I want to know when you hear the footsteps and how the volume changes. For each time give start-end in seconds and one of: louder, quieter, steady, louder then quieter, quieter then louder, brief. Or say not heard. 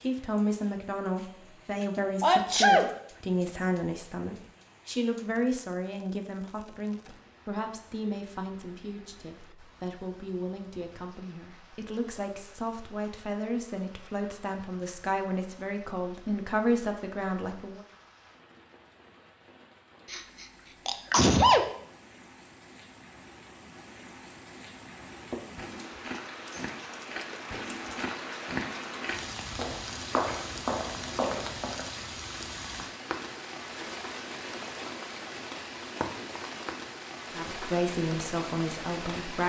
25.3-31.9 louder.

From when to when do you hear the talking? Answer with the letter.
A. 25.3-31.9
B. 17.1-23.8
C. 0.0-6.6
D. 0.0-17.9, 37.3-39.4
D.